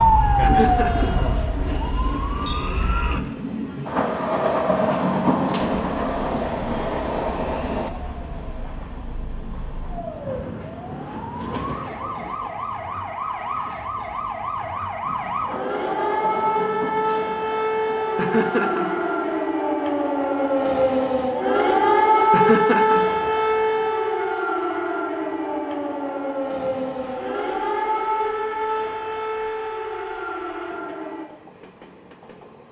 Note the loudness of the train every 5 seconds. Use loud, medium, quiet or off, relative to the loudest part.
loud, loud, quiet, medium, quiet, quiet, quiet.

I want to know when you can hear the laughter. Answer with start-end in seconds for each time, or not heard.
0.4-1.2, 18.1-19.0, 22.3-23.1.